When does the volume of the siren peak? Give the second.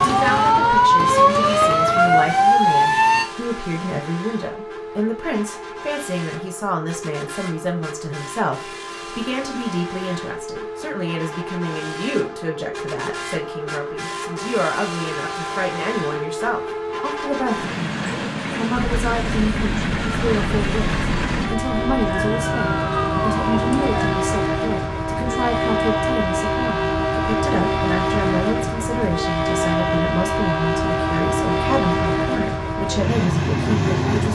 1 s.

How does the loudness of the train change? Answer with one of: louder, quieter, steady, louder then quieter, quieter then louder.
louder.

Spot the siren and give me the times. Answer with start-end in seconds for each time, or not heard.
0.0-3.2, 18.8-24.1.